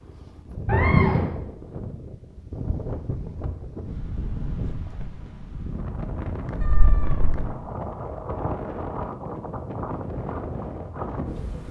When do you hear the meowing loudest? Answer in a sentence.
The volume of the meowing peaks at 1 second.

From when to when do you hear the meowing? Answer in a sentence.
The meowing can be heard from 0.7 to 1.3 s and from 6.6 to 7.4 s.